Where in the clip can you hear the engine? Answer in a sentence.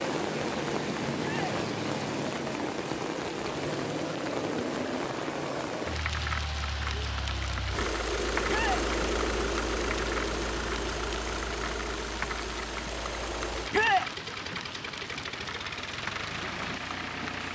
You can hear the engine from 0.0 to 17.5 s.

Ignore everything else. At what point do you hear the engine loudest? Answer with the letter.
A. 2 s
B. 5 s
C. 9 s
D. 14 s
C.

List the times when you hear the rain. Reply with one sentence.
The rain can be heard from 0.0 to 17.5 s.